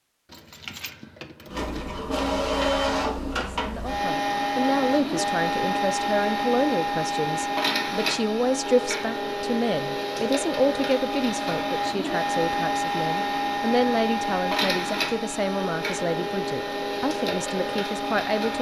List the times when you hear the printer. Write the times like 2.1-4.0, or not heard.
1.4-18.5.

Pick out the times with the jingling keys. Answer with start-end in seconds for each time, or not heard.
0.2-1.9.